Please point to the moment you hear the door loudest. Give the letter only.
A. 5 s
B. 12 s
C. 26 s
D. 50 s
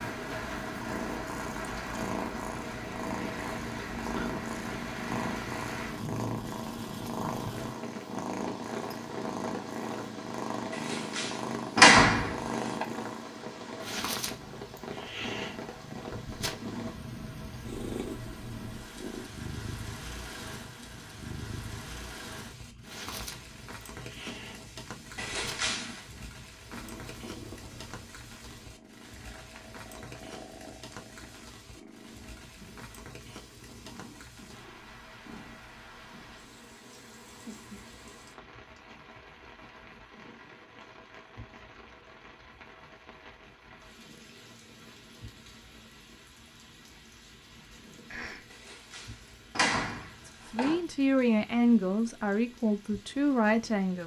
B.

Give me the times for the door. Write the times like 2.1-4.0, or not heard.
10.7-12.8, 25.1-26.1, 48.5-50.8.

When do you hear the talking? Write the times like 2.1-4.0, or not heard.
50.2-54.0.